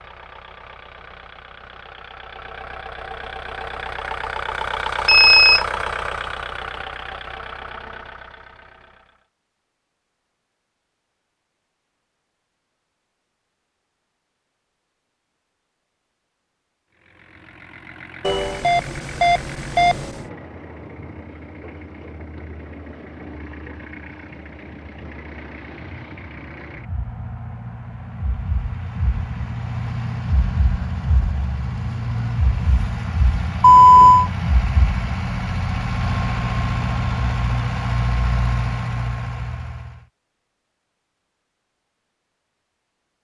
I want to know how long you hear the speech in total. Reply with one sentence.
You can't hear the speech here.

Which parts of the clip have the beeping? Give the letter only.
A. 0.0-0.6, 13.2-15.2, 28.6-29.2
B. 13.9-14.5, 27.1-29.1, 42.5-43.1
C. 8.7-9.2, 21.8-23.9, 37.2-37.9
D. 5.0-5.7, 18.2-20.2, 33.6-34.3
D.